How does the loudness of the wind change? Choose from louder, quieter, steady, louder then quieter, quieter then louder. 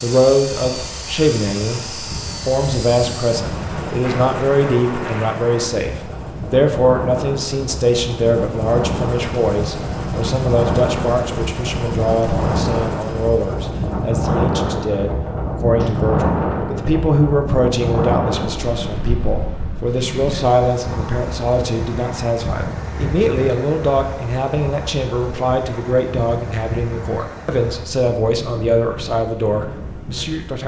louder then quieter.